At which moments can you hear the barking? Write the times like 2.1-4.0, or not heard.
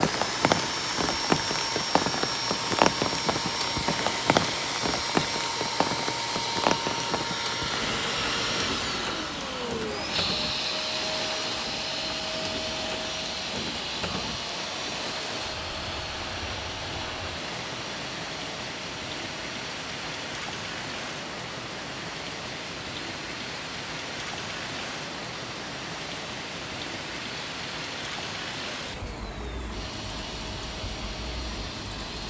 not heard.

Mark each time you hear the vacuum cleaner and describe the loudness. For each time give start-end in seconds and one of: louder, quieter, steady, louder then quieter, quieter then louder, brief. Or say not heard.
0.0-32.2 quieter.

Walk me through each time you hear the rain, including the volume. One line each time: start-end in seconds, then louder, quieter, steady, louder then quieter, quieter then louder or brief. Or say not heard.
0.0-32.2 quieter.